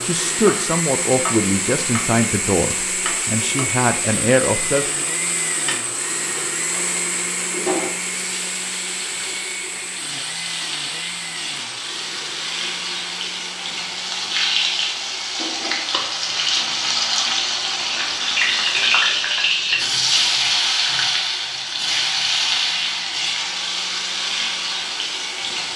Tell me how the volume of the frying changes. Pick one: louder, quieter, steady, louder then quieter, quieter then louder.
louder.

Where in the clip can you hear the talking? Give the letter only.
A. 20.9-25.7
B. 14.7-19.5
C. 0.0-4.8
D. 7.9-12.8
C.